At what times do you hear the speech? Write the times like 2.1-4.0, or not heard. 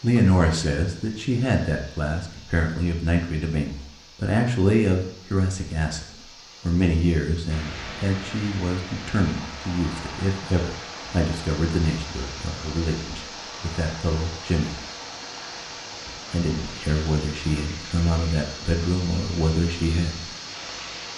0.0-14.8, 16.3-20.2.